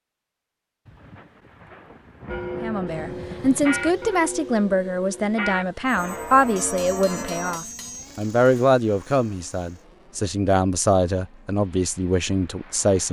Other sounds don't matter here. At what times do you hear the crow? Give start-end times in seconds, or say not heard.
not heard.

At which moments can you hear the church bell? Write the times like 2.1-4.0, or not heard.
2.2-7.6.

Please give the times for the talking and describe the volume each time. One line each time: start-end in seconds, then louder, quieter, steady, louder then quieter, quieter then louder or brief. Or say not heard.
2.6-13.0 steady.